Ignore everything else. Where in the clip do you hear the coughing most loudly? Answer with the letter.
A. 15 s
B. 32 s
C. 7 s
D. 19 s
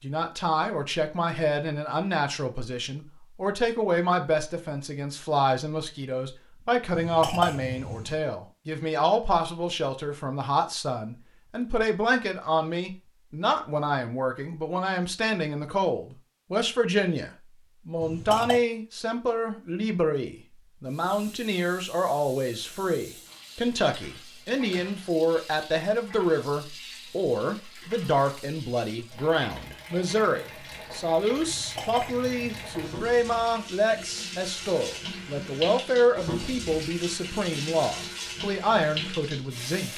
C.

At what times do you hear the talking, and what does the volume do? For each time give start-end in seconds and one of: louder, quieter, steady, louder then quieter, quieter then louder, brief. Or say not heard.
0.0-39.9 steady.